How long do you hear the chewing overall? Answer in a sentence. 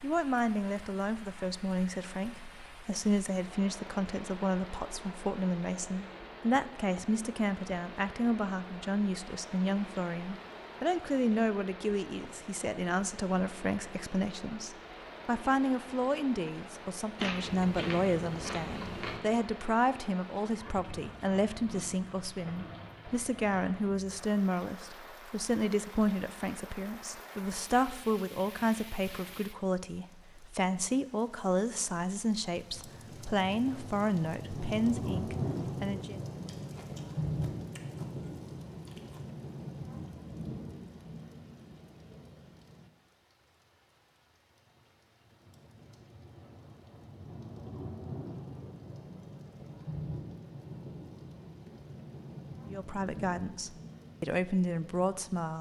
The chewing can be heard for 5 seconds in total.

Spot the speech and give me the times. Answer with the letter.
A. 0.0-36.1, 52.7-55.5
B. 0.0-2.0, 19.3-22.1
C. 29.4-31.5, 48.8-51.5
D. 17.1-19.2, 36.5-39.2
A.